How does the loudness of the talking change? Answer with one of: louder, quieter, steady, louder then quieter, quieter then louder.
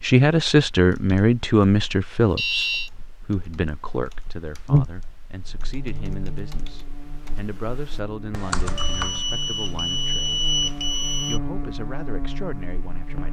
quieter.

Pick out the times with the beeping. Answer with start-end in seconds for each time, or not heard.
2.2-2.9, 8.8-11.4.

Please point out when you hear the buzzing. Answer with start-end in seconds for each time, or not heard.
4.7-13.2.